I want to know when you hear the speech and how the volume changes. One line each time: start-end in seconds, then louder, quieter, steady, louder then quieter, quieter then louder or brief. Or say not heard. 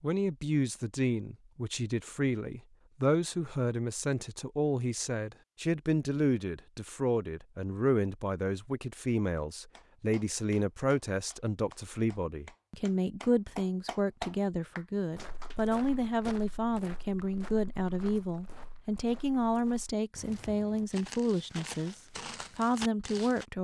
0.0-23.6 steady.